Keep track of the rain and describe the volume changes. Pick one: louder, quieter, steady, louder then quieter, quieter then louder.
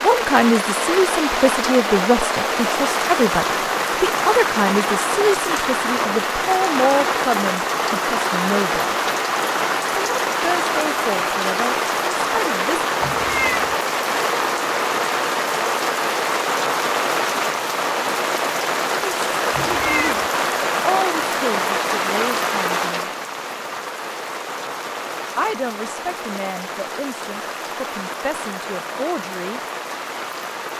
quieter.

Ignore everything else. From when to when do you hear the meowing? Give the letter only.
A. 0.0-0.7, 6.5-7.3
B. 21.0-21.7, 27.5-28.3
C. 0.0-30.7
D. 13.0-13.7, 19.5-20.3
D.